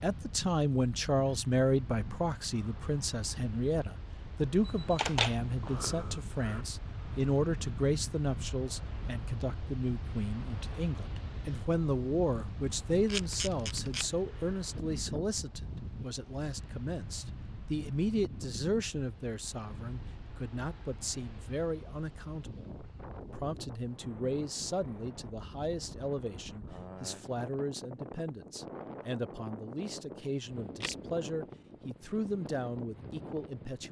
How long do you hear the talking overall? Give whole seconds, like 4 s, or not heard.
33 s.